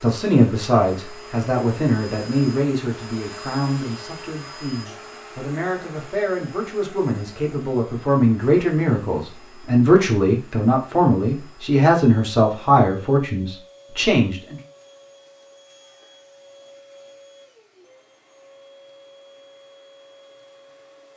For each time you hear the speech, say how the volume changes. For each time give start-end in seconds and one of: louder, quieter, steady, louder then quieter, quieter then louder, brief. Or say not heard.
0.0-14.6 quieter then louder.